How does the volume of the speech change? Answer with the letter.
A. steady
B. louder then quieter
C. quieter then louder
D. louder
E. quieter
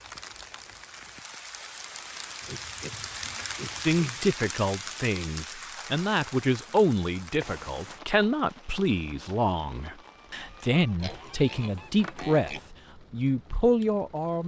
A.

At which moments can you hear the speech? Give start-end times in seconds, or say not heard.
3.9-14.4.